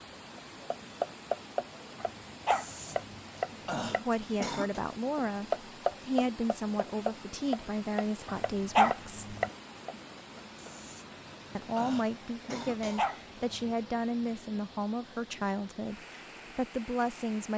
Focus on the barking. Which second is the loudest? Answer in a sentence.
The loudest moment of the barking is at 9 seconds.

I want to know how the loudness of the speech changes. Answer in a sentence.
The loudness of the speech stays about the same.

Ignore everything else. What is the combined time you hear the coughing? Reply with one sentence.
You can hear the coughing for 5 seconds altogether.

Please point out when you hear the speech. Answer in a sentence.
The speech can be heard from 3.9 to 9.3 s and from 11.6 to 17.5 s.